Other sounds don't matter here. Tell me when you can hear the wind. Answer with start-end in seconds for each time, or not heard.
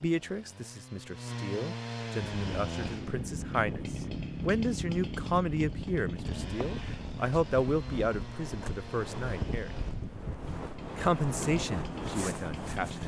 2.1-13.0.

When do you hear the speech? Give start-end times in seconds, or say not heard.
0.0-9.8, 10.9-13.0.